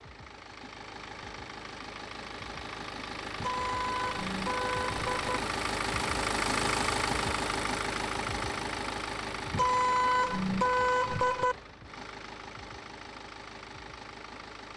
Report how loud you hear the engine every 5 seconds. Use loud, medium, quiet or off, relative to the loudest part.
medium, loud, medium.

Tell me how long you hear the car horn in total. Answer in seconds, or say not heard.
4 s.